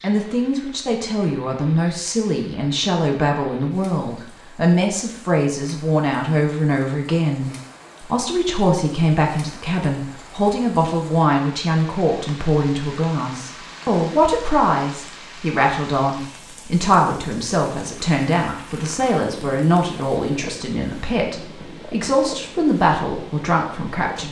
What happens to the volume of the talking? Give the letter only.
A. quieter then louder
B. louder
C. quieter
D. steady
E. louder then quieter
D.